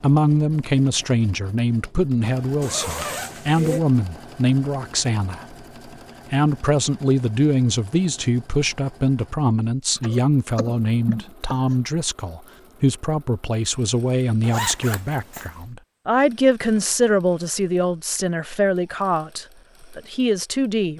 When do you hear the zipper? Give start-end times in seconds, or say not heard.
2.6-3.8, 14.4-15.6.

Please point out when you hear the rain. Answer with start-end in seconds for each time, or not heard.
not heard.